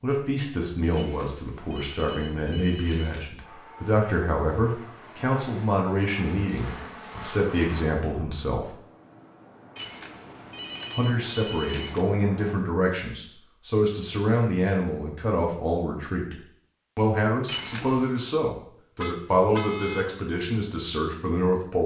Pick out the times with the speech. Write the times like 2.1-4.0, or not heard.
0.0-8.7, 10.9-16.4, 16.9-21.8.